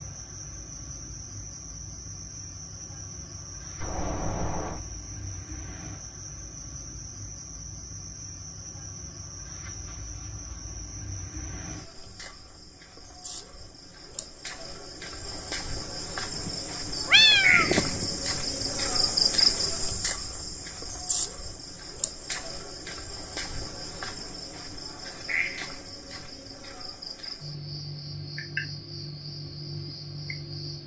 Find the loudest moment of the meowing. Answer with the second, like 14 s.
17 s.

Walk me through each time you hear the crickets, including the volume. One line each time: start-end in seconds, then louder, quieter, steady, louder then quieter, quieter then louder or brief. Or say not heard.
0.0-30.8 louder then quieter.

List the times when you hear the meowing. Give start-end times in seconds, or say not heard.
3.8-4.8, 16.4-18.2.